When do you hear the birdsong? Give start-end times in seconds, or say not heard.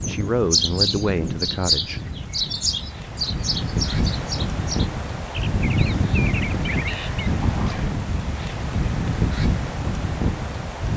0.0-7.8.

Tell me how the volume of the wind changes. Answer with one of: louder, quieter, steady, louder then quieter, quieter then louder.
louder.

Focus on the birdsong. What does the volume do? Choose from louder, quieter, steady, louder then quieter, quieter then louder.
quieter.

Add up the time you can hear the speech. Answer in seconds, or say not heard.
2 s.